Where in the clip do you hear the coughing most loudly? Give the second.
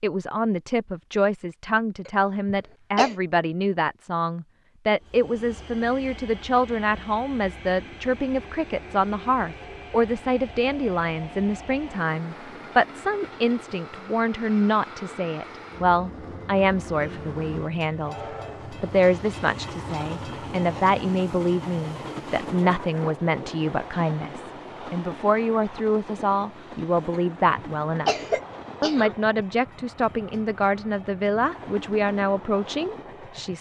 28 s.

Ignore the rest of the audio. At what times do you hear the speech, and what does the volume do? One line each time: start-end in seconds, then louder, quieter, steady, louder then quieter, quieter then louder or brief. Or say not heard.
0.0-28.1 steady
28.8-33.5 steady.